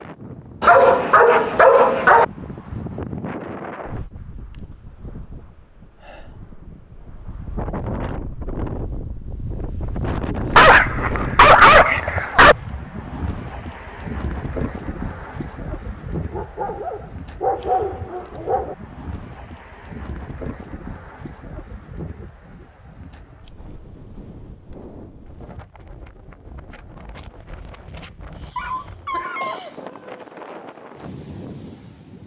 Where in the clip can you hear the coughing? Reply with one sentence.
The coughing can be heard from 28.4 to 29.9 s.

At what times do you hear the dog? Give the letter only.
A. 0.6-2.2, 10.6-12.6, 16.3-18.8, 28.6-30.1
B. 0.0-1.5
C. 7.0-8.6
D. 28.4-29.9
A.